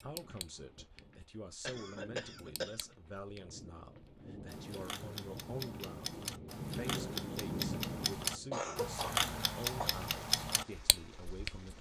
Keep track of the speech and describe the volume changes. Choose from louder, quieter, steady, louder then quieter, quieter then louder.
steady.